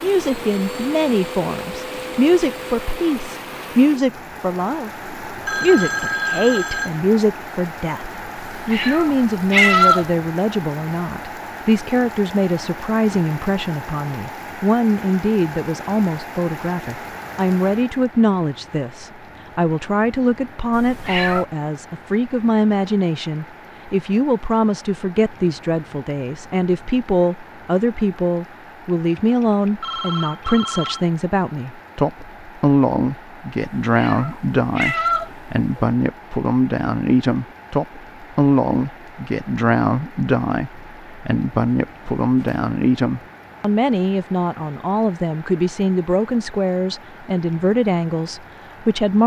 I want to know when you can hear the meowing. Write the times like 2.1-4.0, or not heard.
8.5-10.1, 20.7-21.4, 33.9-35.6.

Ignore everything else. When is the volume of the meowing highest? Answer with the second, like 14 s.
10 s.